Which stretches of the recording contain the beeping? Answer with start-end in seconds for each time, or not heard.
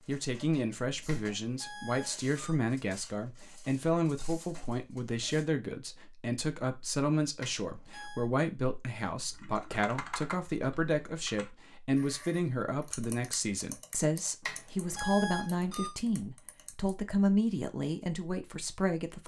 1.1-2.5, 7.4-8.3, 14.4-15.9.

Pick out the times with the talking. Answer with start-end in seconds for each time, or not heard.
0.0-19.2.